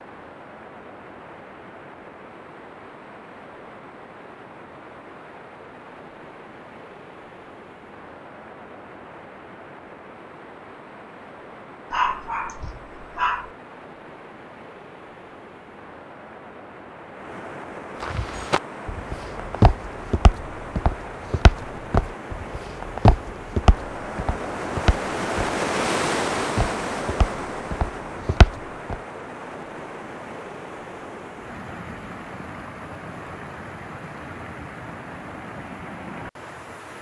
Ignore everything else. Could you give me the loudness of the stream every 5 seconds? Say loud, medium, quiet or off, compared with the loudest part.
quiet, quiet, quiet, medium, medium, loud, medium, medium.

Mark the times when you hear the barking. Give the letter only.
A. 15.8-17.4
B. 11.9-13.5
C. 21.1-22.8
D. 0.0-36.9
B.